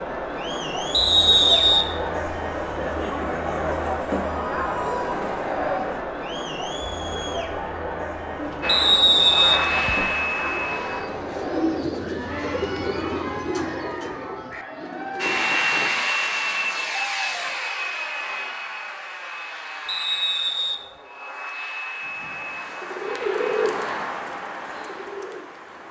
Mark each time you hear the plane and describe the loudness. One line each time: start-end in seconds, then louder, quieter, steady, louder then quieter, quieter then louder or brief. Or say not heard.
8.6-11.1 brief
15.2-23.6 quieter.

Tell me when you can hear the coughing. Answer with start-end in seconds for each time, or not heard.
not heard.